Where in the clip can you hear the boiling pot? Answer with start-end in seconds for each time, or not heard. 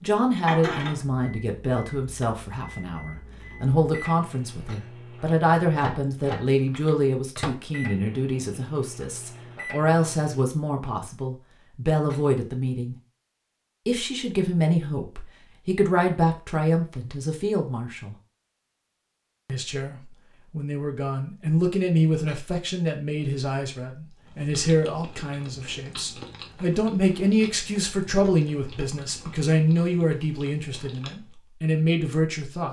not heard.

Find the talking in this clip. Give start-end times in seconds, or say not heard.
0.0-12.9, 13.8-18.1, 19.4-32.6.